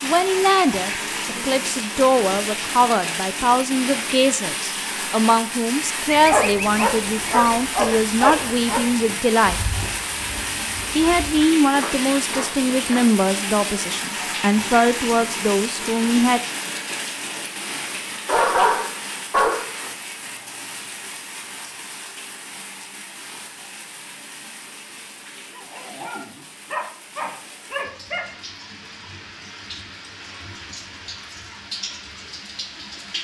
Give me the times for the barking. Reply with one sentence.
You can hear the barking from 6.2 to 8.8 s, from 18.2 to 19.9 s and from 25.5 to 28.2 s.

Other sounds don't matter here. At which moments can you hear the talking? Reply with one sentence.
You can hear the talking from 0.0 to 9.7 s and from 10.9 to 16.4 s.